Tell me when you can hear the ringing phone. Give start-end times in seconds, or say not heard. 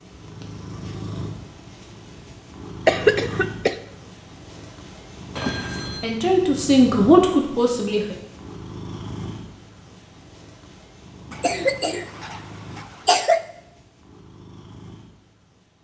5.3-6.2.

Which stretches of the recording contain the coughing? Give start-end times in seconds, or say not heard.
2.9-3.8, 11.3-13.4.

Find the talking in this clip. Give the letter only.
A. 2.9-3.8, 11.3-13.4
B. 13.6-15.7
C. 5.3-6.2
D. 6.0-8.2
D.